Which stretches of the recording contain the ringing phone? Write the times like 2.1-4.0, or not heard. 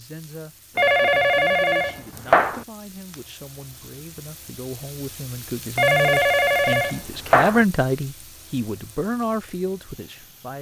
0.8-2.6, 5.8-7.7.